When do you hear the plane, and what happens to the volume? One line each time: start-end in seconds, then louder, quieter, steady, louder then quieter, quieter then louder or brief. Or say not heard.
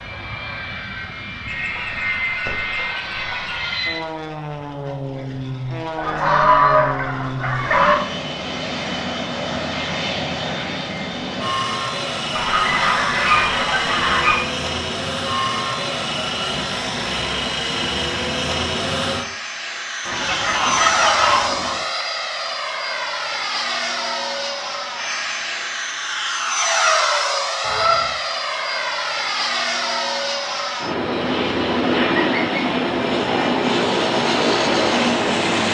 0.0-35.7 louder.